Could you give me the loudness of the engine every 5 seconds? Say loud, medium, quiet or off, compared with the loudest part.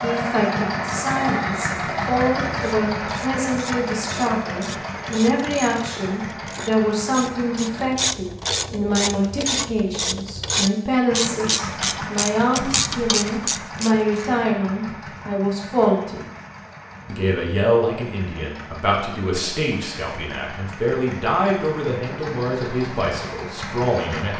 loud, medium, medium, quiet, medium.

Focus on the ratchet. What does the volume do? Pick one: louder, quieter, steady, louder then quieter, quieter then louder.
louder.